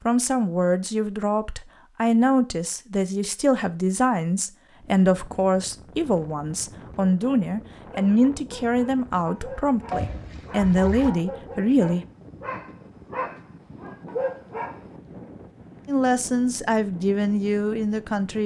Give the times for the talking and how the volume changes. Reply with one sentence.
You can hear the talking from 0.1 to 12.1 s, at a steady volume; and briefly from 15.8 to 18.4 s.